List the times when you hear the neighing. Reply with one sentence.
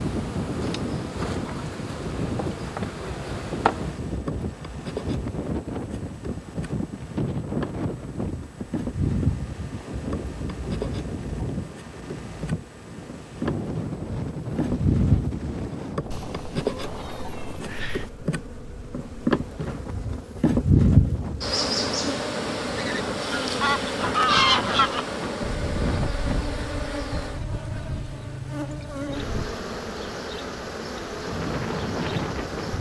You can't hear the neighing here.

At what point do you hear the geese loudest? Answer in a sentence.
The loudest moment of the geese is at 24 seconds.